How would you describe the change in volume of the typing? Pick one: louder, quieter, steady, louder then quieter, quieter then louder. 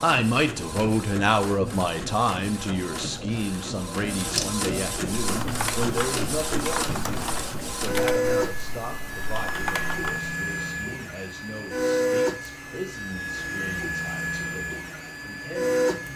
quieter then louder.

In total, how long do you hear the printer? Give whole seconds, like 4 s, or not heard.
16 s.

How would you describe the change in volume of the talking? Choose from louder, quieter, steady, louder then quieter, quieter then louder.
quieter.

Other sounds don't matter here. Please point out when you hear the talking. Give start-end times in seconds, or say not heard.
0.0-16.1.